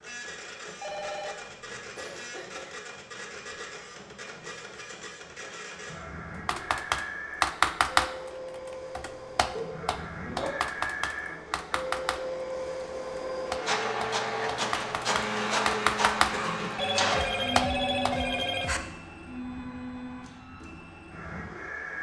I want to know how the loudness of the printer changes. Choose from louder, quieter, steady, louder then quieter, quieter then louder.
louder then quieter.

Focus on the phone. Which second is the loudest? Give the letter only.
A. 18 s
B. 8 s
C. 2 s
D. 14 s
A.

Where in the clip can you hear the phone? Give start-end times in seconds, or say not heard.
0.8-1.9, 16.8-18.8.